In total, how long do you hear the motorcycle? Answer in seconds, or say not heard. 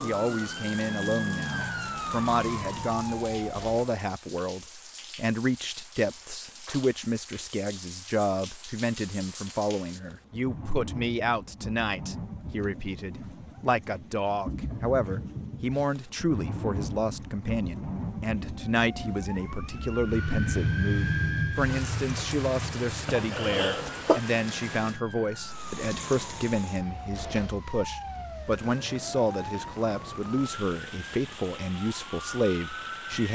not heard.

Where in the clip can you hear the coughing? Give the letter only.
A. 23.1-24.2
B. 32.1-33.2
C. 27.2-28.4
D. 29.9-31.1
A.